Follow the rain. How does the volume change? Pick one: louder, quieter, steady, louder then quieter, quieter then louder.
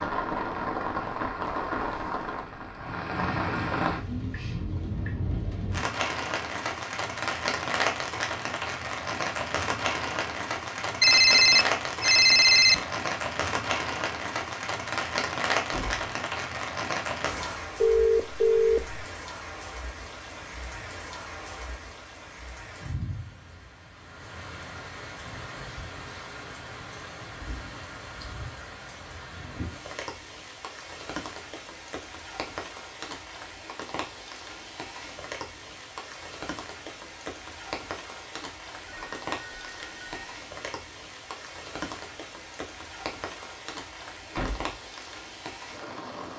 quieter.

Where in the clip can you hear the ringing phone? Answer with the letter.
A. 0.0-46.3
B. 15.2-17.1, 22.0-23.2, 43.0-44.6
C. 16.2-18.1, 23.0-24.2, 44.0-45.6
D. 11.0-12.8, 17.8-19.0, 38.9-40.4
D.